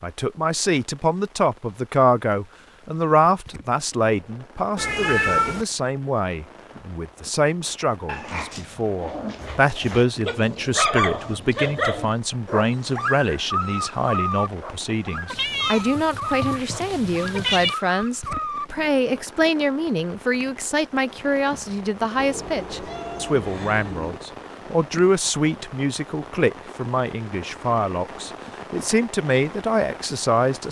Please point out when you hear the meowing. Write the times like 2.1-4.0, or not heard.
4.8-5.7, 15.2-17.8, 22.1-24.2.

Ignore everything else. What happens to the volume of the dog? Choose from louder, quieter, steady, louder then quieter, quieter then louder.
louder then quieter.